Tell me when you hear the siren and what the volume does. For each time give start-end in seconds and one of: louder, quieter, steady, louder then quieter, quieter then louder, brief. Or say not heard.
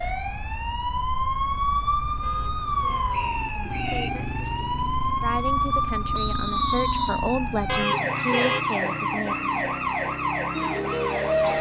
0.0-11.5 steady.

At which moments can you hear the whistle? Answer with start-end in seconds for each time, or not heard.
3.1-4.1, 6.1-7.2.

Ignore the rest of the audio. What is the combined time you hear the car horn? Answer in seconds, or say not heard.
2 s.